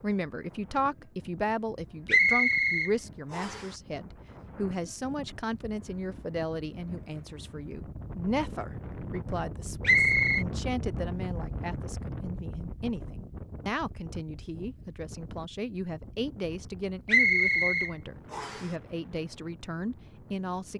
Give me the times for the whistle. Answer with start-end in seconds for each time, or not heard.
2.0-3.6, 9.8-10.4, 17.1-18.6.